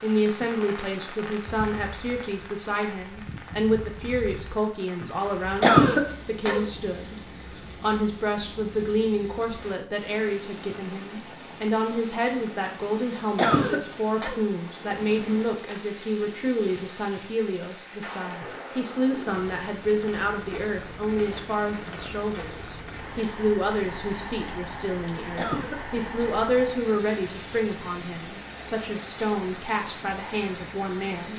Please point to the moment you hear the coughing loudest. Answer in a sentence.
The loudest moment of the coughing is at 6 seconds.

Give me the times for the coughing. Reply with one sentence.
The coughing can be heard from 5.6 to 6.7 s, from 13.3 to 14.3 s and from 25.4 to 26.4 s.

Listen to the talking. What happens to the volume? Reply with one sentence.
The volume of the talking stays about the same.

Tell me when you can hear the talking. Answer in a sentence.
You can hear the talking from 0.0 to 31.3 s.